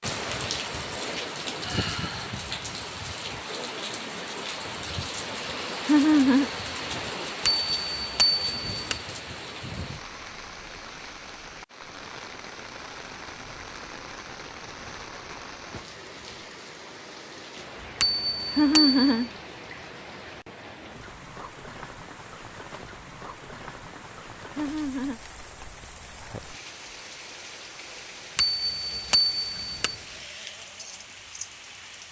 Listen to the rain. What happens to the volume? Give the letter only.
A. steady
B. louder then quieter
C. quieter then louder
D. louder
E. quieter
E.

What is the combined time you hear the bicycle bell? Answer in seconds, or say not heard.
4 s.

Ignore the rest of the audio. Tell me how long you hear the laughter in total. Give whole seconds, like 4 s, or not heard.
2 s.